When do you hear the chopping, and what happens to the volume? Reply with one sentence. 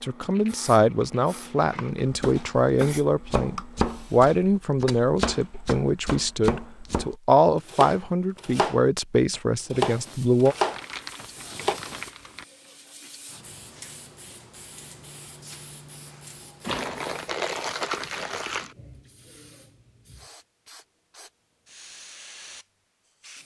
You can hear the chopping from 2.0 to 11.8 s, getting louder.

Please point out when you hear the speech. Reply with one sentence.
You can hear the speech from 0.0 to 10.6 s.